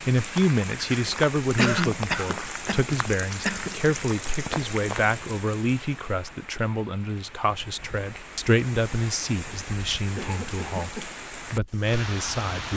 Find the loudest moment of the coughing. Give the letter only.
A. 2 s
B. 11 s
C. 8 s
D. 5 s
A.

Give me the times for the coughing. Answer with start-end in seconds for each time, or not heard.
1.6-4.0, 10.2-11.2.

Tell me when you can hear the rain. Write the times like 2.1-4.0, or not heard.
0.0-12.7.